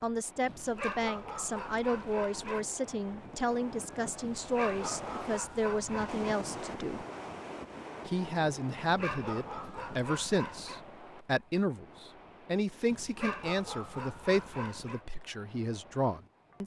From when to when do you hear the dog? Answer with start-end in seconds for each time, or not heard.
0.5-2.6, 4.2-6.3, 8.8-10.8, 12.9-15.0.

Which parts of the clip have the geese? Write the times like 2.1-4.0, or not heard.
not heard.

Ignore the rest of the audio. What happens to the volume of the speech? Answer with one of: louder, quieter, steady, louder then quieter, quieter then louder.
steady.